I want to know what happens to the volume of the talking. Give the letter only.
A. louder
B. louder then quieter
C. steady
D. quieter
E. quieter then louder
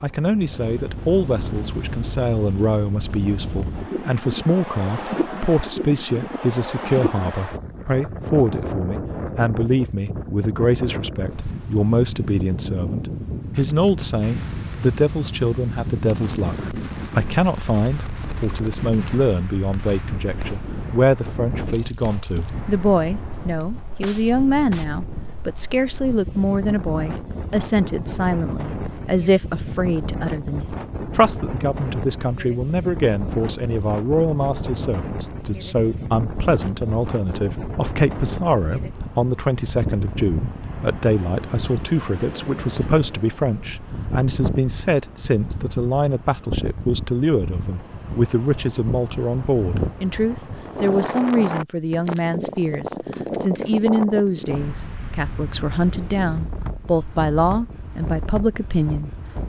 C.